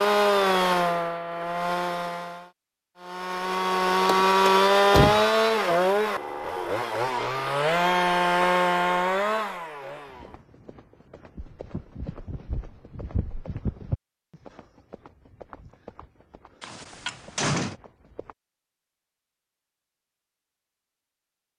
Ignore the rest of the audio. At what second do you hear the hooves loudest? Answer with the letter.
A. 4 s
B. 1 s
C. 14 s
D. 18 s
C.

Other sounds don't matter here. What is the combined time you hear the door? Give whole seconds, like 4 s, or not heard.
2 s.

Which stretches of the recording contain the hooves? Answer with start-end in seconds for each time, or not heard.
10.1-18.4.